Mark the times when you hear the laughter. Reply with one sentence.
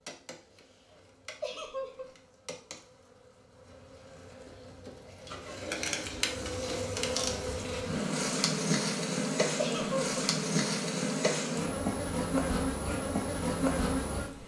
The laughter can be heard from 1.4 to 2.1 s and from 9.6 to 10.1 s.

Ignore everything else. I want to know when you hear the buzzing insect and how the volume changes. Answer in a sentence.
The buzzing insect can be heard from 0.0 to 14.4 s, getting louder.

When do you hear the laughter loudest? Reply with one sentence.
The volume of the laughter peaks at 10 seconds.